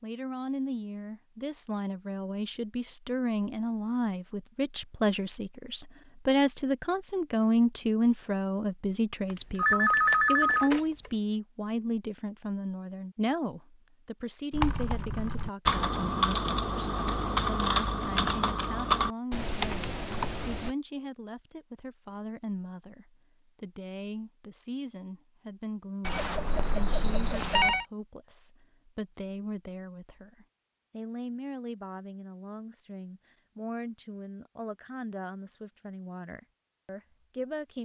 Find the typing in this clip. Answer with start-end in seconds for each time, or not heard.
14.5-20.8.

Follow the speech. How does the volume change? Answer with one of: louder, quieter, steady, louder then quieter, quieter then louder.
quieter.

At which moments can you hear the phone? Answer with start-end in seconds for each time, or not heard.
9.3-11.1, 26.1-27.9.